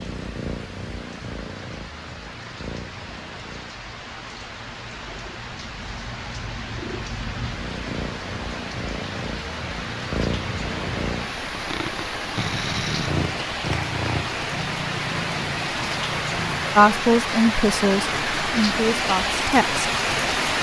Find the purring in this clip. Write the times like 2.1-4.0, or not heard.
0.0-16.9.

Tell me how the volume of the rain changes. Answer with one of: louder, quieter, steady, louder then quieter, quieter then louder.
louder.